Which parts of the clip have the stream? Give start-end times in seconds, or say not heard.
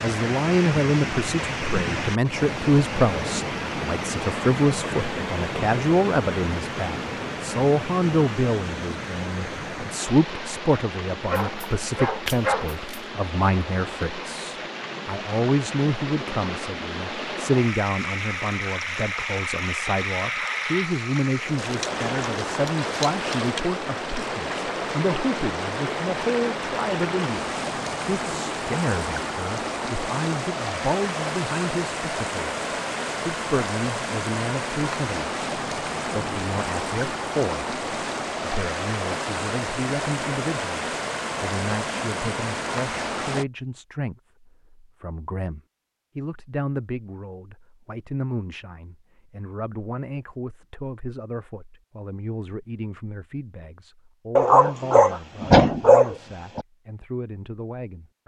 0.0-43.5.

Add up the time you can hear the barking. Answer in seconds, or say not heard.
4 s.